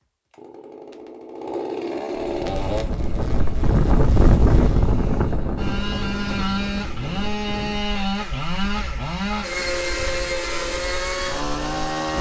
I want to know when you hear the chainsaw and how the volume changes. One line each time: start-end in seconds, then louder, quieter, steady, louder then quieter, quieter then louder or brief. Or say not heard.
0.0-12.1 quieter then louder.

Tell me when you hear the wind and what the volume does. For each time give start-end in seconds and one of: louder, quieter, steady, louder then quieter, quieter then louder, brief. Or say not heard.
2.1-12.1 quieter.